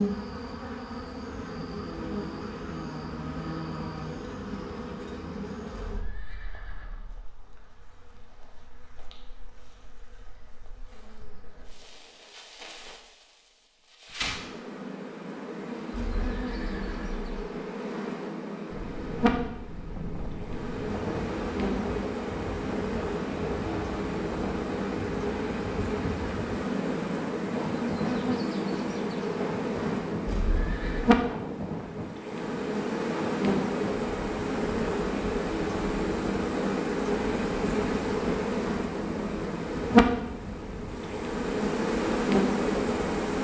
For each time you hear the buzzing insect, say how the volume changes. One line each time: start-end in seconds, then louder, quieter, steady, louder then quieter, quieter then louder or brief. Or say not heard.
0.0-43.4 louder.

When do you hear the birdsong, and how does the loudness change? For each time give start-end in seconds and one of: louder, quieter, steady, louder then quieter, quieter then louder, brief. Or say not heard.
not heard.